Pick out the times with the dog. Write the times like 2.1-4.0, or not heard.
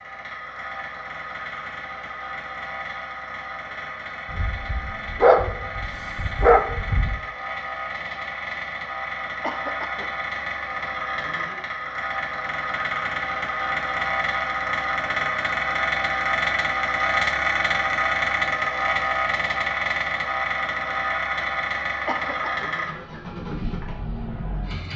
4.3-7.2.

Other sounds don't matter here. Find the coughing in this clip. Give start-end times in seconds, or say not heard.
9.4-10.1, 22.1-22.7.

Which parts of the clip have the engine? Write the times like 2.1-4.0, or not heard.
0.0-24.9.